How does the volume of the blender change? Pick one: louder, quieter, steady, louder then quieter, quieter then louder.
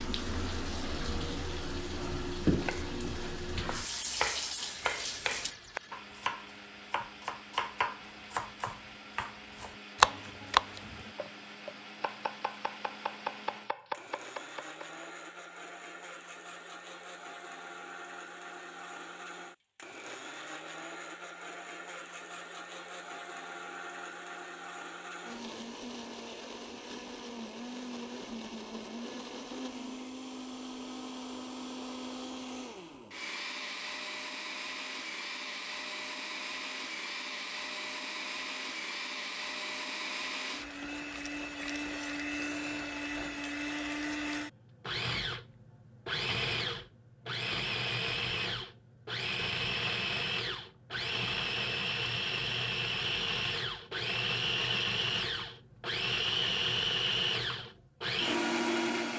louder.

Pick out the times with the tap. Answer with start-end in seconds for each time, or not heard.
0.0-5.5.